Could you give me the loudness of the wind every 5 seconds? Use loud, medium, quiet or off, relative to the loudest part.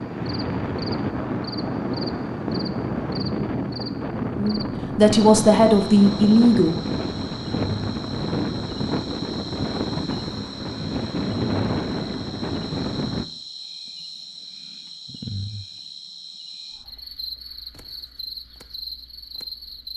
loud, loud, loud, off.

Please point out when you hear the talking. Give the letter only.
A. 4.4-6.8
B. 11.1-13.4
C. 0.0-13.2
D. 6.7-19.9
A.